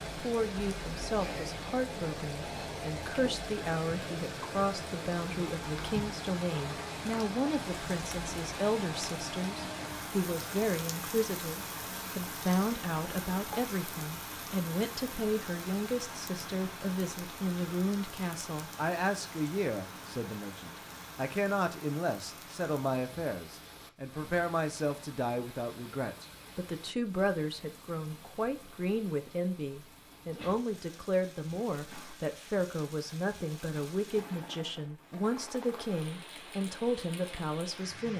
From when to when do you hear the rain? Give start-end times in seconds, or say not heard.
0.0-38.1.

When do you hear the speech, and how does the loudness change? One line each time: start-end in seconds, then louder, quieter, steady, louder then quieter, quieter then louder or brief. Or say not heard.
0.1-38.1 steady.